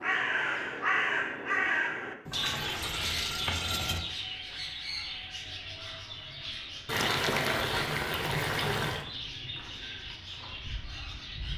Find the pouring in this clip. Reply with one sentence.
You can hear the pouring from 2.2 to 4.0 s and from 6.8 to 9.1 s.